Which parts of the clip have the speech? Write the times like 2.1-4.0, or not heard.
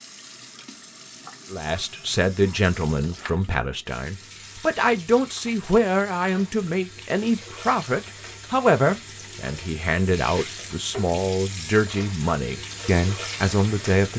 1.5-14.1.